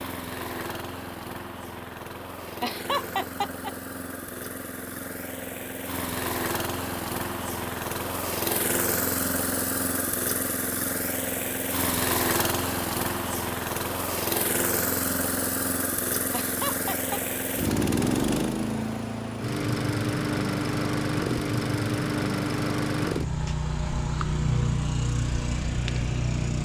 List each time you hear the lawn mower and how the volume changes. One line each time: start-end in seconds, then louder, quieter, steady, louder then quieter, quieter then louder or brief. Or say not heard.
0.0-26.5 louder.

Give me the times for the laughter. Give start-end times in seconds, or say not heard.
2.6-3.7, 16.3-17.2.